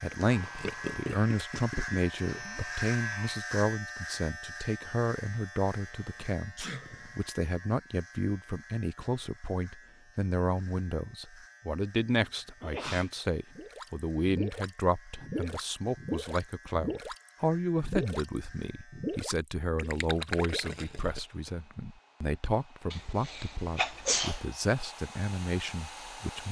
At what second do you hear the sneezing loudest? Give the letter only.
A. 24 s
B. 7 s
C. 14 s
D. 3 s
A.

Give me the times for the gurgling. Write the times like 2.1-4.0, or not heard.
0.0-2.6, 13.6-21.5.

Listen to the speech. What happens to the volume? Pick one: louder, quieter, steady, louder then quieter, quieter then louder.
steady.